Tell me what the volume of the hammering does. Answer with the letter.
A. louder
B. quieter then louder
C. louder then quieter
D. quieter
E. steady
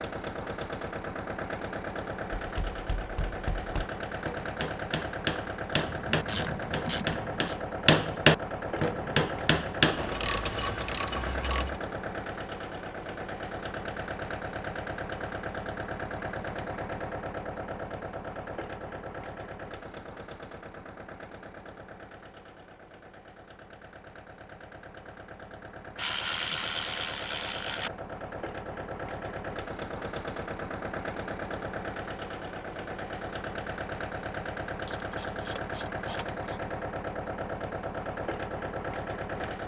A.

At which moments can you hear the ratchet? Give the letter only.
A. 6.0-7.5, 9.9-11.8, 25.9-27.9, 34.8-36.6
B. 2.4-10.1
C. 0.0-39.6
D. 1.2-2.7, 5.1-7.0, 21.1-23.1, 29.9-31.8
A.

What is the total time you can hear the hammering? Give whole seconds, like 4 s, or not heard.
8 s.